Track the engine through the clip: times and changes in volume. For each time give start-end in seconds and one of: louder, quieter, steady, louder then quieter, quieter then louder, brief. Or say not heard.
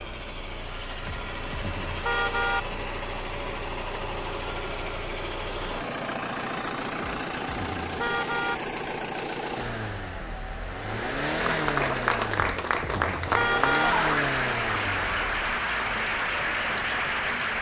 0.0-17.5 steady.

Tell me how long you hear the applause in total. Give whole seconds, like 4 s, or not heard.
6 s.